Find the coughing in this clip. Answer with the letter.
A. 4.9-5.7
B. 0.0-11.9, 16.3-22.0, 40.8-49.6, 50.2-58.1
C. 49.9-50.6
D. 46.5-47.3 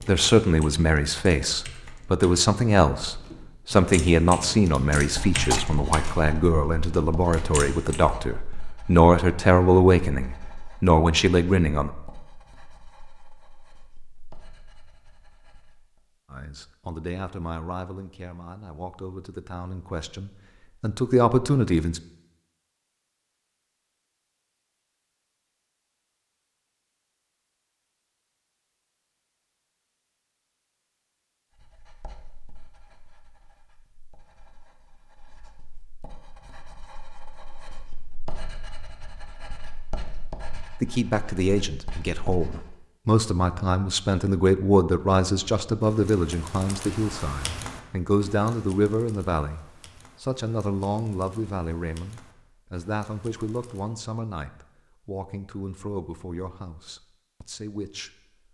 A.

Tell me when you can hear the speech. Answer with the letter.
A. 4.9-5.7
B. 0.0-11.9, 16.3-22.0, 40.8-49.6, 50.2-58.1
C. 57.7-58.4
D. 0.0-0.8
B.